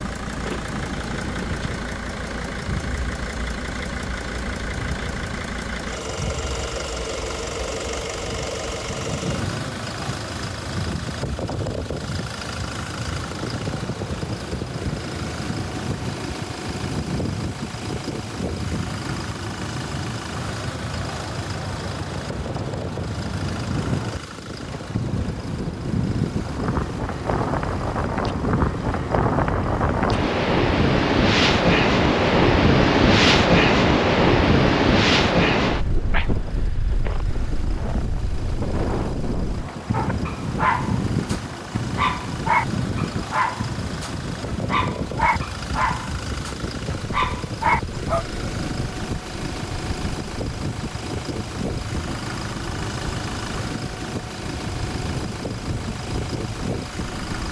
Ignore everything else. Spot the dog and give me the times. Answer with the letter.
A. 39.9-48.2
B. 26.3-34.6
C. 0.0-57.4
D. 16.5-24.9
A.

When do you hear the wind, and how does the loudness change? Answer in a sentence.
The wind can be heard from 0.0 to 57.4 s, getting louder then quieter.